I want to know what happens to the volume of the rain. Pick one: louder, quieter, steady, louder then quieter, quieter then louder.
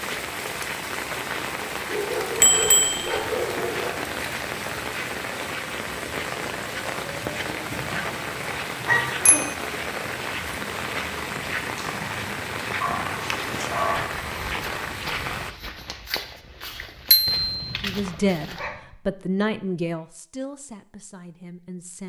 steady.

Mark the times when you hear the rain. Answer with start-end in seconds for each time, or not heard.
0.0-15.6.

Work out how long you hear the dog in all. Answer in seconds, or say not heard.
7 s.